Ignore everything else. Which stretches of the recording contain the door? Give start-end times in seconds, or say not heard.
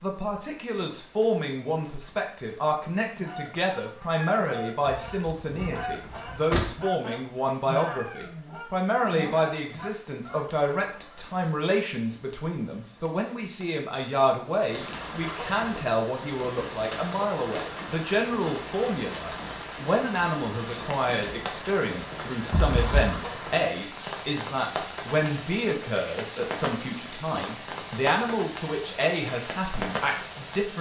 4.8-6.7, 22.5-23.2.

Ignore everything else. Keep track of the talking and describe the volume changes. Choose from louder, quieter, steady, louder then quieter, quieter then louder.
steady.